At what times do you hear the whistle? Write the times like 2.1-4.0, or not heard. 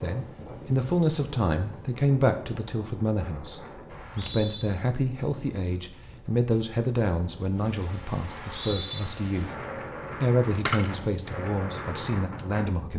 3.9-4.7, 8.2-9.0.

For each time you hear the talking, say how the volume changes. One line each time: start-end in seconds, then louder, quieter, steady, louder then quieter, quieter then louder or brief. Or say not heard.
0.0-9.5 quieter
10.2-12.9 brief.